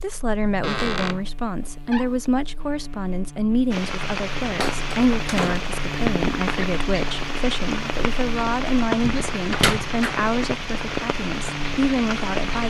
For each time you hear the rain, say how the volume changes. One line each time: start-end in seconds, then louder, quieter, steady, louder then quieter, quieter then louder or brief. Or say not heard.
3.7-12.6 steady.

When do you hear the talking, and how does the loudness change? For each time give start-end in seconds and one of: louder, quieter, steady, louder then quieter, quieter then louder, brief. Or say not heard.
0.0-12.6 steady.